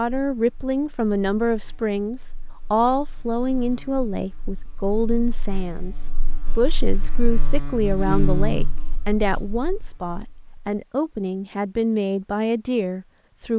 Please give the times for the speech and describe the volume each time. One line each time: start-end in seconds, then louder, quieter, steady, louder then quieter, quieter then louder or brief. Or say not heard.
0.0-13.5 steady.